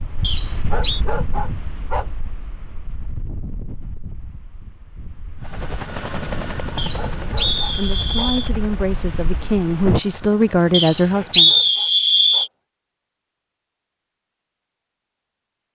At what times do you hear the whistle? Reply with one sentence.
You can hear the whistle from 0.2 to 1.0 s, from 6.8 to 8.5 s and from 10.7 to 12.5 s.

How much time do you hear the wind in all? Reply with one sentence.
The wind can be heard for 10 seconds in total.